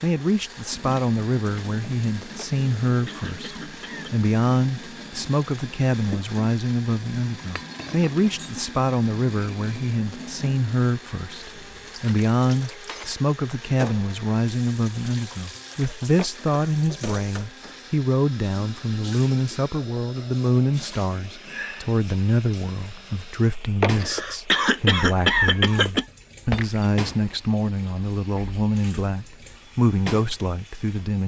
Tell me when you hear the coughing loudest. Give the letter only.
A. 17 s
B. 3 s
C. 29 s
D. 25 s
D.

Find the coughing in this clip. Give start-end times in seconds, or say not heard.
2.4-4.1, 16.1-16.6, 23.8-26.1.